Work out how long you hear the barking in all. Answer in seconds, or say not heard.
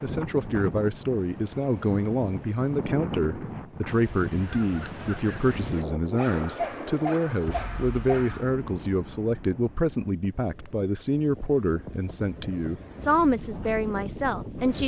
2 s.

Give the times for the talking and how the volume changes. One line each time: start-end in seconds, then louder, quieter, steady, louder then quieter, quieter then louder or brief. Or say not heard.
0.0-14.8 steady.